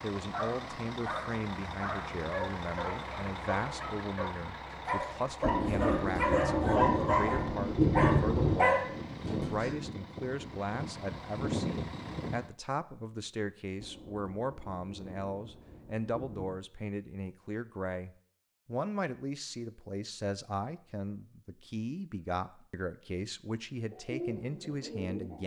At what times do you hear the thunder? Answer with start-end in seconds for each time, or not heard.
5.4-8.7, 13.8-16.6.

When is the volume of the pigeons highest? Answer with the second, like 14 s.
24 s.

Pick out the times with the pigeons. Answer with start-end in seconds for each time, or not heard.
23.9-25.4.